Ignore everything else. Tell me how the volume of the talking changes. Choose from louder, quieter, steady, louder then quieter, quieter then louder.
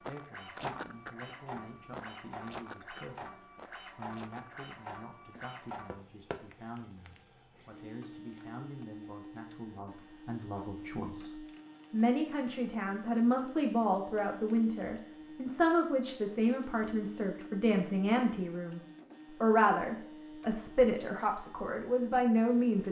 louder.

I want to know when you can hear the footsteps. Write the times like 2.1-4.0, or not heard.
0.0-5.5.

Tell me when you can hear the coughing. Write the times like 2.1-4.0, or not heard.
not heard.